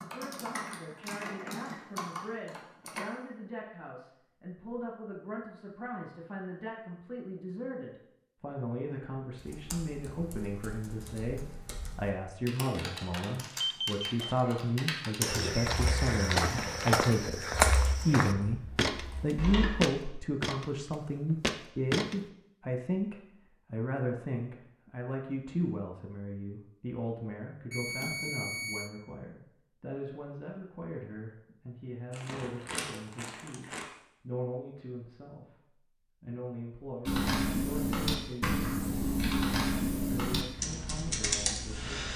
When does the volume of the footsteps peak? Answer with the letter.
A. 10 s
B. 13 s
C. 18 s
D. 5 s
C.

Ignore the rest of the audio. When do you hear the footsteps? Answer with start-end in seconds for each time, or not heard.
15.2-22.1.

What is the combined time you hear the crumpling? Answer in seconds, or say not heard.
2 s.